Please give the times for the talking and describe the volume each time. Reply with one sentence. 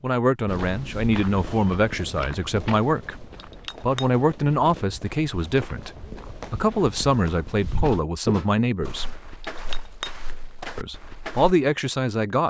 The talking can be heard from 0.0 to 9.2 s, at a steady volume; and briefly from 10.8 to 12.4 s.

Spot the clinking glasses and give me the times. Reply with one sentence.
The clinking glasses can be heard from 3.4 to 4.1 s and from 9.4 to 10.1 s.